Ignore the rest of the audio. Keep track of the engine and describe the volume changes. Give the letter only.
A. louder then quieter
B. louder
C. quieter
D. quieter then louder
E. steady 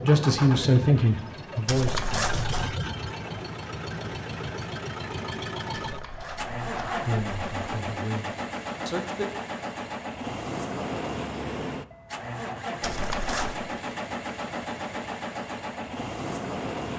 E.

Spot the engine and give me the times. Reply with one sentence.
The engine can be heard from 0.0 to 16.9 s.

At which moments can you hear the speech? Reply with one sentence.
You can hear the speech from 0.0 to 2.6 s and from 7.0 to 9.2 s.